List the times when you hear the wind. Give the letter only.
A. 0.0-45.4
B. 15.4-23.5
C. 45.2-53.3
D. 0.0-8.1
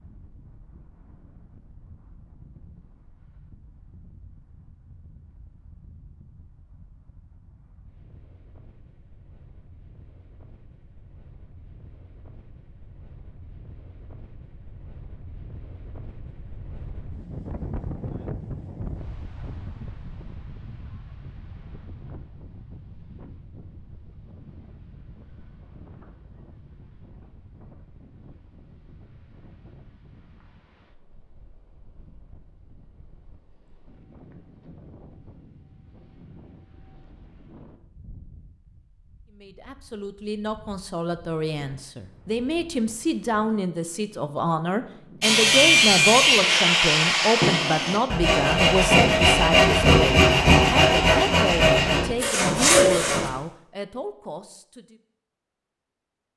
A.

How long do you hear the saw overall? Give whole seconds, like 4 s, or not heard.
8 s.